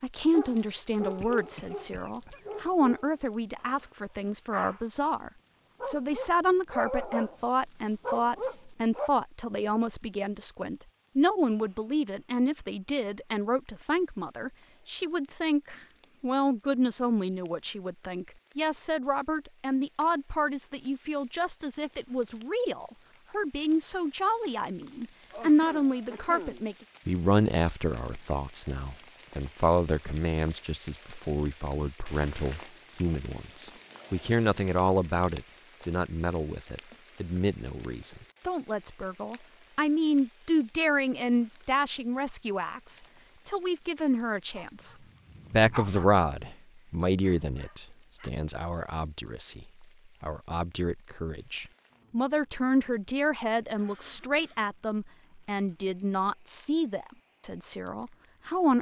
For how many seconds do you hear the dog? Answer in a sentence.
You can hear the dog for 11 seconds altogether.